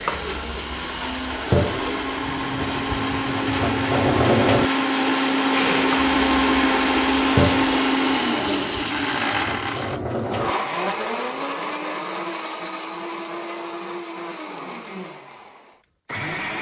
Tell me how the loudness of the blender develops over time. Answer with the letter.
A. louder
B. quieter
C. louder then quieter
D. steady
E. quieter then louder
C.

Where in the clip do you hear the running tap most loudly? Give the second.
4 s.